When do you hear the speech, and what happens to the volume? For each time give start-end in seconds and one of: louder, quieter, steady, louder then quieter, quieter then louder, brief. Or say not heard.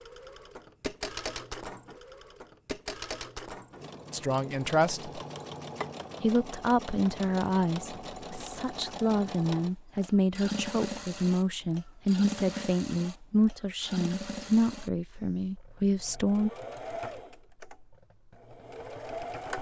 4.1-5.2 brief
6.2-16.5 steady.